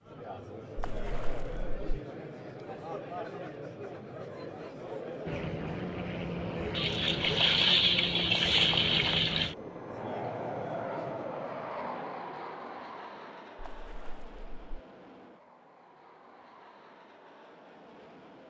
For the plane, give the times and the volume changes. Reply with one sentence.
You can hear the plane from 5.2 to 18.4 s, getting quieter.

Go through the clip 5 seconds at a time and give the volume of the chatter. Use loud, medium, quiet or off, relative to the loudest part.
loud, loud, loud, off.